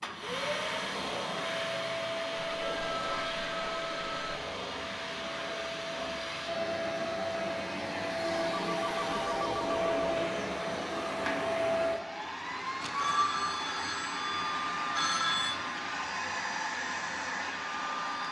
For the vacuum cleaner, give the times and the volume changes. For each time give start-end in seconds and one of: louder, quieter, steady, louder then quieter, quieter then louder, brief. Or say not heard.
0.0-18.2 steady.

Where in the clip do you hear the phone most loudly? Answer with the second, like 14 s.
15 s.